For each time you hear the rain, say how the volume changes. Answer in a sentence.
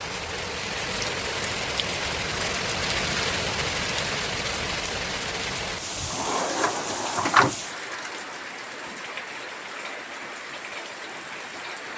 The rain can be heard from 0.0 to 11.9 s, getting quieter.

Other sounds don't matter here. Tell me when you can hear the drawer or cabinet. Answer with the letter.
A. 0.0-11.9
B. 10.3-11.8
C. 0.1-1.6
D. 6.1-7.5
D.